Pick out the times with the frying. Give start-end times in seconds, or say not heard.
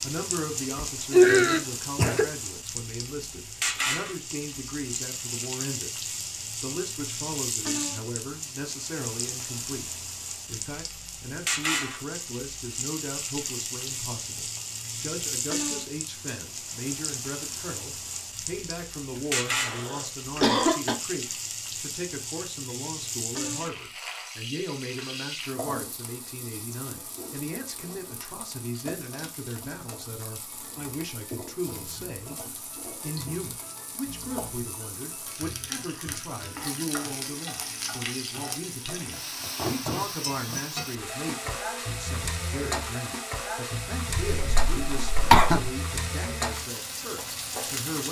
0.0-48.0.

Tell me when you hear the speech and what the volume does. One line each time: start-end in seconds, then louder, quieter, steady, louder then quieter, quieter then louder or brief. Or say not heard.
0.0-48.0 steady.